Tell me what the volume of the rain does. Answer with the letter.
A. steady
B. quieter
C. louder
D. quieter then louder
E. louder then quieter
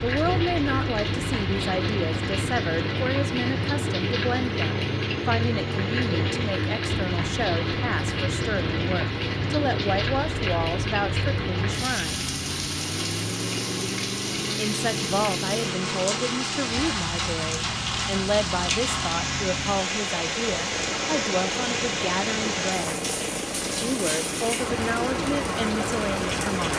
A.